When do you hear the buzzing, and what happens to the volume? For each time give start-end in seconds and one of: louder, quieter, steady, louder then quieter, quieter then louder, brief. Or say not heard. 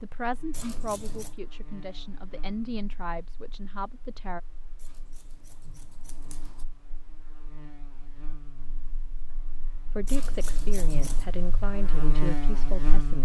0.0-13.2 quieter then louder.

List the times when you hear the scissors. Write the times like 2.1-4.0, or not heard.
0.5-1.4, 4.8-6.7, 10.1-11.3.